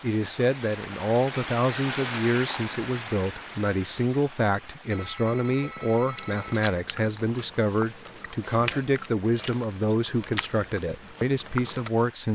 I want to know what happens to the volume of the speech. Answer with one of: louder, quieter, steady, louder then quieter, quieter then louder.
steady.